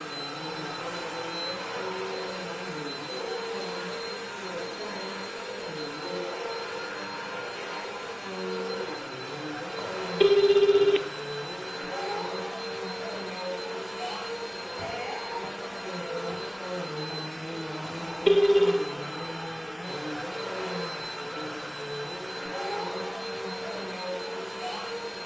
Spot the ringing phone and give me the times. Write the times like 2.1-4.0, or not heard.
9.8-11.0, 17.8-18.9.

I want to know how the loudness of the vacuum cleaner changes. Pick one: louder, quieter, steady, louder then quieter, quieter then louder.
steady.